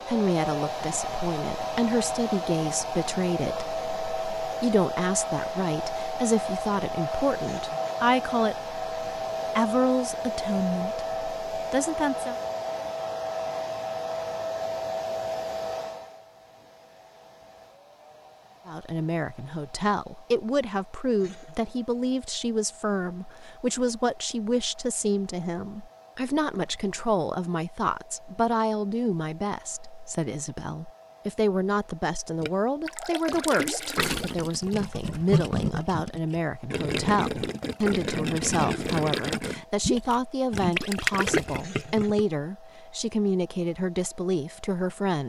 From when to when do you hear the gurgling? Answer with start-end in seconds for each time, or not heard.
32.4-42.2.